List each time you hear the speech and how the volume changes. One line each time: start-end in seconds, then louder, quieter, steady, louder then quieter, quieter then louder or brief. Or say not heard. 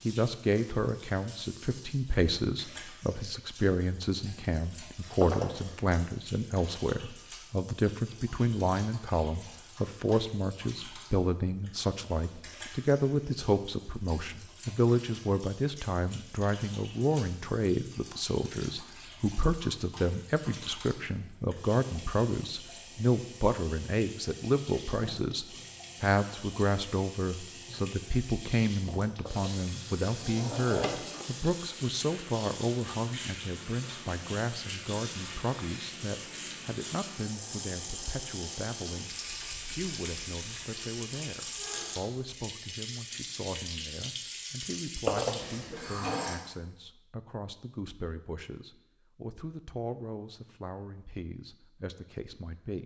0.1-52.8 quieter.